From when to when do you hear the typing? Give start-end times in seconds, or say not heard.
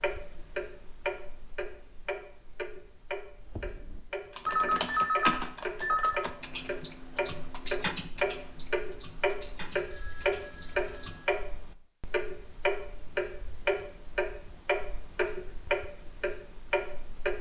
3.4-11.2.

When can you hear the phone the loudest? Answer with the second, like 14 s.
5 s.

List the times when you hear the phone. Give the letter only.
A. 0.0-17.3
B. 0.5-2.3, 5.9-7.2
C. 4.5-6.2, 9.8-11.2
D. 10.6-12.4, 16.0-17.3
C.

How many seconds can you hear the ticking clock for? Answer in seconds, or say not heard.
17 s.